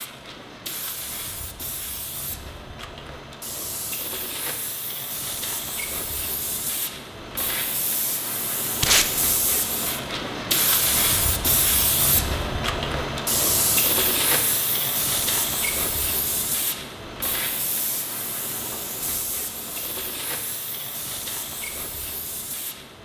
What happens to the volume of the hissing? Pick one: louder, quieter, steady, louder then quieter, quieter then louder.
louder then quieter.